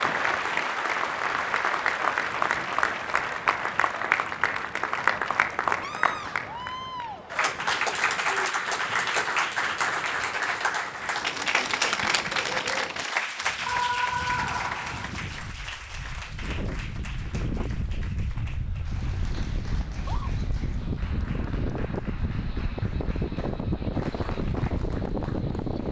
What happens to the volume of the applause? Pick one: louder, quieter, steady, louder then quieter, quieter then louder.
quieter.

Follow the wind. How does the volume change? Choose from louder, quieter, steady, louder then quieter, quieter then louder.
louder.